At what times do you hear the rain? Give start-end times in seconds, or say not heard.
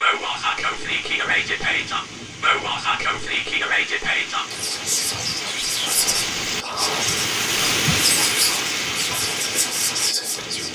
0.0-10.6.